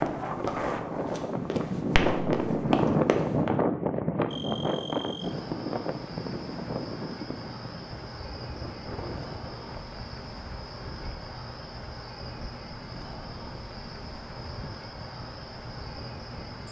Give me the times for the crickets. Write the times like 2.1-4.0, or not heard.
4.2-16.6.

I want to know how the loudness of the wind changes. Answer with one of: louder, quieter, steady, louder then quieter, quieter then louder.
quieter.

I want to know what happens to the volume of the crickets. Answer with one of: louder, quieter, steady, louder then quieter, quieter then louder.
steady.